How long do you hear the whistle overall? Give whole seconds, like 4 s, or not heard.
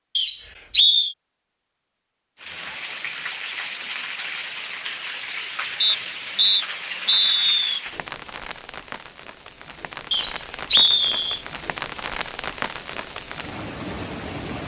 4 s.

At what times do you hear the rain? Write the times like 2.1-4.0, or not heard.
2.4-14.6.